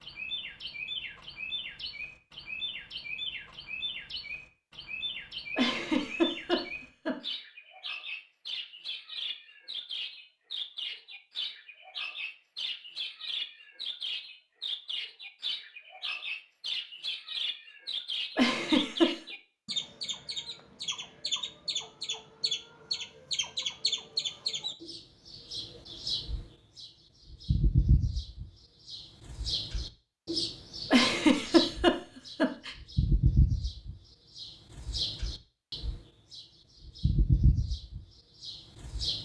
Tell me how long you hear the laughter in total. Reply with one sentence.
The laughter can be heard for 4 seconds in total.